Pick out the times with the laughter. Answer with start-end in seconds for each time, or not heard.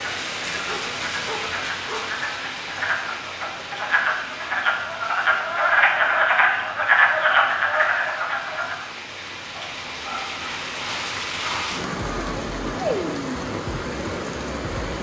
not heard.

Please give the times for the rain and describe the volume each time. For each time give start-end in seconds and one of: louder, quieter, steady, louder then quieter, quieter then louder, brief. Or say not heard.
0.0-14.9 quieter then louder.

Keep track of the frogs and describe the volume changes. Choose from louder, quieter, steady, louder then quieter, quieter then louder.
louder.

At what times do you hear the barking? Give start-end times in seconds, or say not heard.
0.7-2.1, 9.6-12.4.